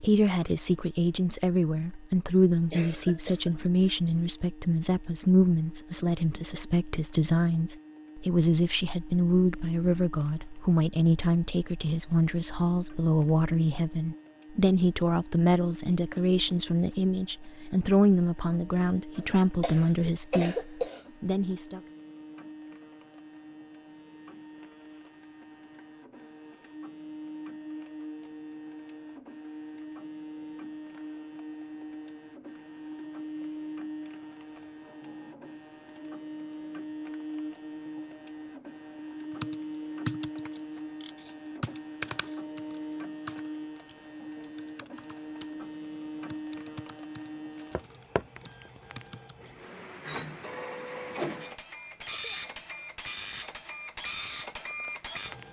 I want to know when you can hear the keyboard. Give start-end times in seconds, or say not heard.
39.3-49.4.